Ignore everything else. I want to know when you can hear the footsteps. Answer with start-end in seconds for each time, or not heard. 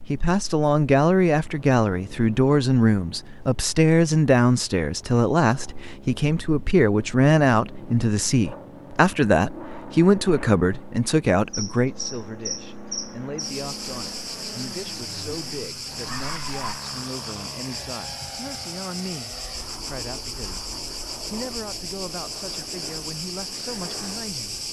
not heard.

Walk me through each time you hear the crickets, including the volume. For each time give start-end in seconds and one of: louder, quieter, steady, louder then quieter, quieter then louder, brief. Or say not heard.
11.5-24.6 steady.